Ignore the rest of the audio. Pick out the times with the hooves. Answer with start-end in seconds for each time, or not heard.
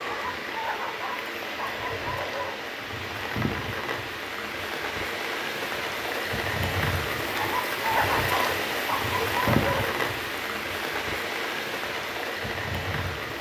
not heard.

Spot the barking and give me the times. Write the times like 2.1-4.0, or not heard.
0.1-2.6, 7.3-10.0.